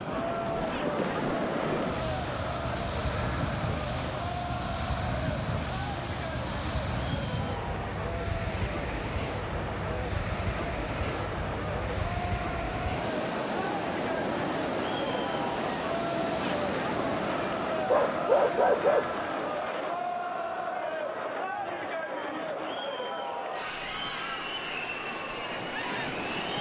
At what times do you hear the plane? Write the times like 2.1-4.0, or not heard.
not heard.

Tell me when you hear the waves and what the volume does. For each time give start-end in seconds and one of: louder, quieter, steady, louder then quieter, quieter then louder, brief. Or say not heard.
0.0-26.5 quieter.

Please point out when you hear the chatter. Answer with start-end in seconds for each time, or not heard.
0.0-26.5.